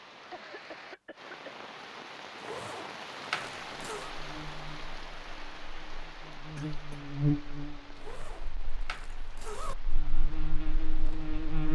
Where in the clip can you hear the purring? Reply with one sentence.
The purring can't be heard in this clip.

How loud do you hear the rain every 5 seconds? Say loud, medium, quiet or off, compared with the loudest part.
loud, medium, medium.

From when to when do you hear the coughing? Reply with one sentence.
The coughing can be heard from 0.3 to 1.7 s and from 6.5 to 7.1 s.